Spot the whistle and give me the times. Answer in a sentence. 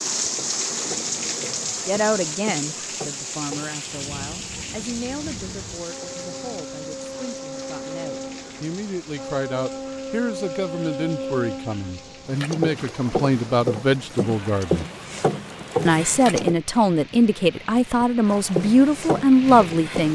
You can't hear the whistle here.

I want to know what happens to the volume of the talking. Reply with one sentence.
The volume of the talking goes down, then up.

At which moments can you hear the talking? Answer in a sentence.
The talking can be heard from 1.9 to 14.8 s and from 15.8 to 20.1 s.